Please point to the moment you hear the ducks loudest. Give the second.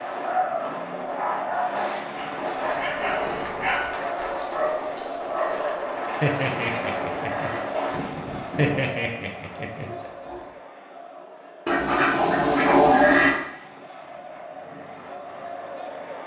13 s.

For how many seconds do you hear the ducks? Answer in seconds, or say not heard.
6 s.